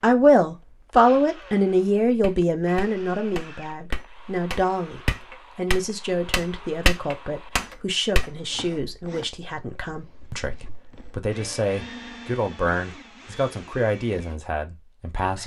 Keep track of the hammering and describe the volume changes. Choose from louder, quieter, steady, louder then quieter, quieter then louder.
louder.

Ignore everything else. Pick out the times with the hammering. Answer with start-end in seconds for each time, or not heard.
2.0-8.4.